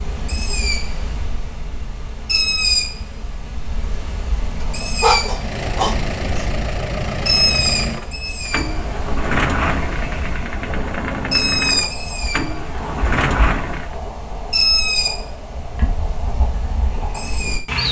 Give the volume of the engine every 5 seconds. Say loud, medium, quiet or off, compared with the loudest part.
off, loud, loud, off.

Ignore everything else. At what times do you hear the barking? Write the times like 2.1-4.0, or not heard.
4.6-6.5.